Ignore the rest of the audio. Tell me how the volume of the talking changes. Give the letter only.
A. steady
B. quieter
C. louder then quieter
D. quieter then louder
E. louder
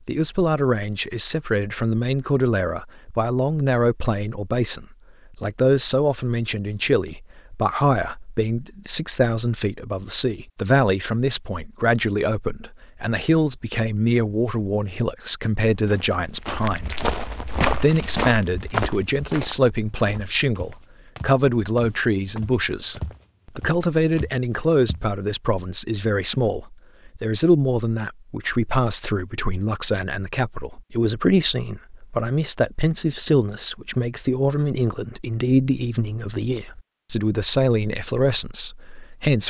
A.